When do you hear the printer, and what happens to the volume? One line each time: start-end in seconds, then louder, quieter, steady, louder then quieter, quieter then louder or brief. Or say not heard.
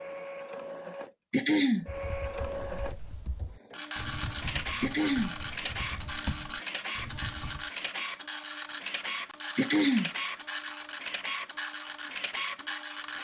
0.0-13.1 steady.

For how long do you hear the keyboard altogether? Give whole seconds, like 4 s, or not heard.
6 s.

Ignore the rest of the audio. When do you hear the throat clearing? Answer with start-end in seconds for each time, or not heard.
1.3-1.9, 4.8-5.3, 9.6-10.1.